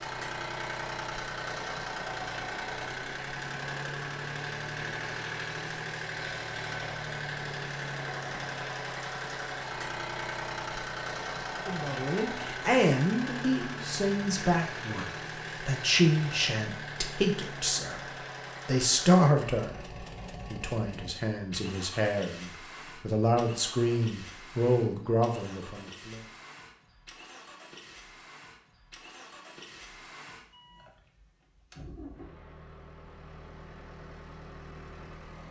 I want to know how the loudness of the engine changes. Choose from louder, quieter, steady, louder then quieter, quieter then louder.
quieter.